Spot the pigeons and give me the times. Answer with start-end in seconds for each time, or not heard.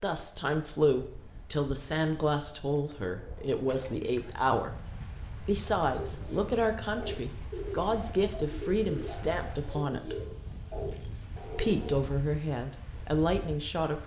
5.8-12.1.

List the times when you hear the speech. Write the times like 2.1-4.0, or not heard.
0.0-4.8, 5.5-10.2, 11.6-14.0.